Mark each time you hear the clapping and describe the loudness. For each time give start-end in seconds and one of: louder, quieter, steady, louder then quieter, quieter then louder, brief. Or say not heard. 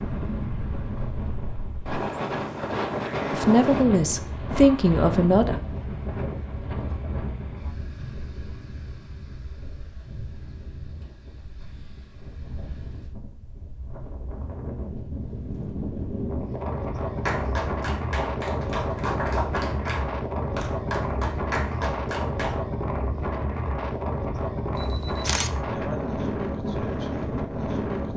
17.2-22.6 steady.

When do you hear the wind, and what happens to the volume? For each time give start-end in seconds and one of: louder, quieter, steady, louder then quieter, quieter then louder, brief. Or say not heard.
0.0-28.1 quieter then louder.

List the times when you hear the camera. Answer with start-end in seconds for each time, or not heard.
24.8-25.5.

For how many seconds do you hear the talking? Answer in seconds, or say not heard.
2 s.